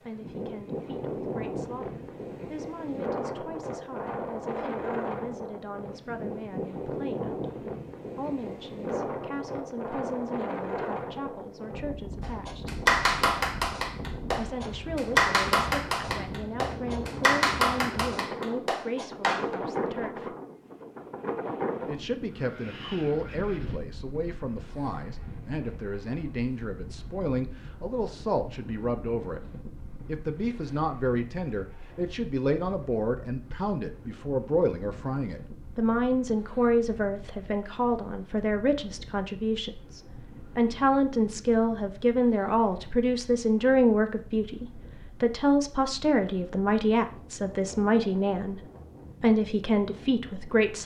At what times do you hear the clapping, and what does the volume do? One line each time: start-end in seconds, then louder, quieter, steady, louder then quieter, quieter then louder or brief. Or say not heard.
12.2-19.6 quieter.